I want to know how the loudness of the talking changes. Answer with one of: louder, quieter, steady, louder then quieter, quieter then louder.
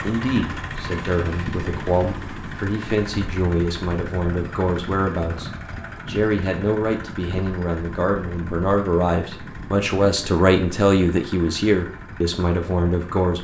louder.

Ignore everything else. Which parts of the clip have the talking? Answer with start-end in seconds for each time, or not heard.
0.0-13.3.